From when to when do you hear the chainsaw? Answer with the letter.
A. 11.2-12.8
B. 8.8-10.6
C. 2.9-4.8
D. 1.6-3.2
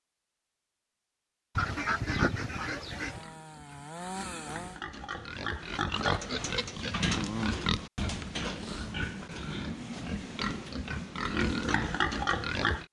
C.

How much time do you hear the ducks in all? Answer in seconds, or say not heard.
2 s.